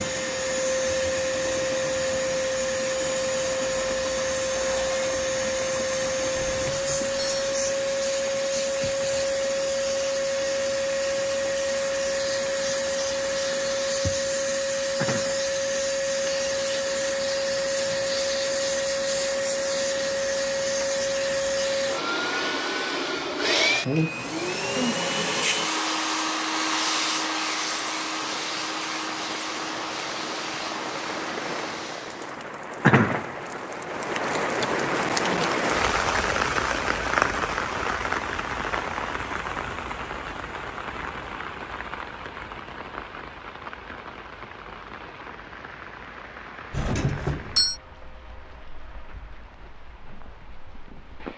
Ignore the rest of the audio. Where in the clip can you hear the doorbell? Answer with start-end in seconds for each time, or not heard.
6.3-7.5, 46.7-47.8.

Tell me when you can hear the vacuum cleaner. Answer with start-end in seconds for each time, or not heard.
0.0-32.4.